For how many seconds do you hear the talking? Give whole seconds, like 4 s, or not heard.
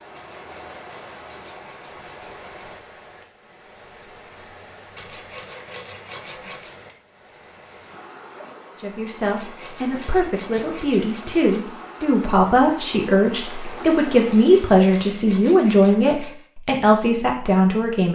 9 s.